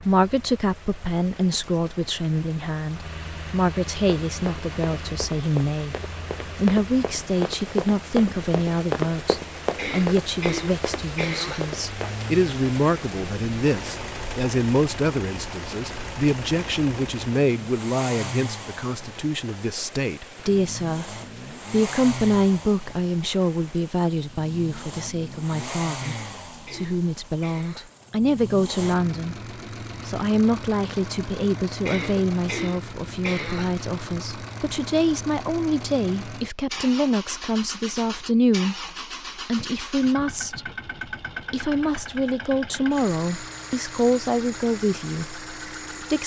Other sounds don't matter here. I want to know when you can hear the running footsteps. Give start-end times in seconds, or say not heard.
4.0-12.2.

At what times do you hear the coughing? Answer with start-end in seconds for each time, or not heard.
9.8-11.7, 26.0-27.9, 31.9-33.8.